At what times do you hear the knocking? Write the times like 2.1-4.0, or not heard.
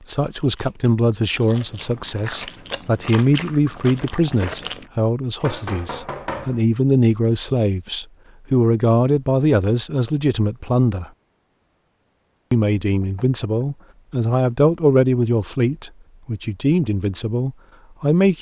5.4-6.7, 13.0-13.9.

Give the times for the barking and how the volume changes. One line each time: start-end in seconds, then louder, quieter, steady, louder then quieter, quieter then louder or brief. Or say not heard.
not heard.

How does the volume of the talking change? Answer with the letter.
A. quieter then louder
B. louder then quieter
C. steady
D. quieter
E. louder
C.